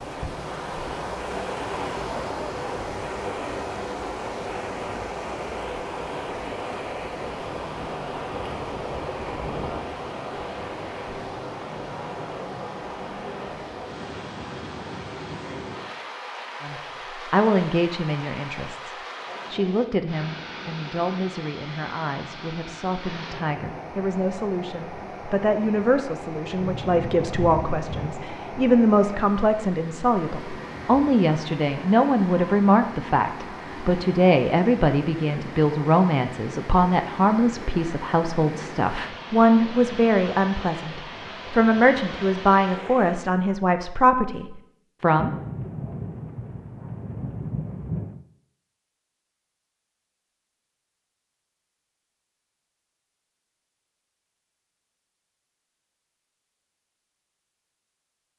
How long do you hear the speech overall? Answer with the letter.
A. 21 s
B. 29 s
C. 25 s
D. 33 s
B.